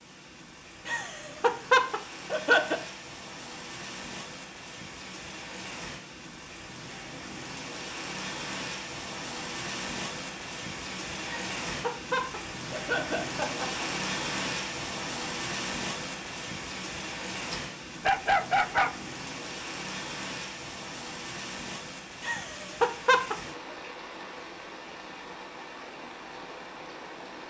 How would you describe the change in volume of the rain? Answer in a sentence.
The volume of the rain goes up, then down.